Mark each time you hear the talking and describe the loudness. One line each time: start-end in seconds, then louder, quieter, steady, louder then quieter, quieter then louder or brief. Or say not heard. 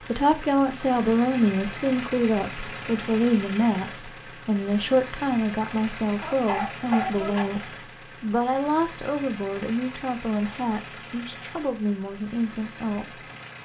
0.1-13.3 quieter.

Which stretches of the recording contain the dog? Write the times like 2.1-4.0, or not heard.
6.2-7.7.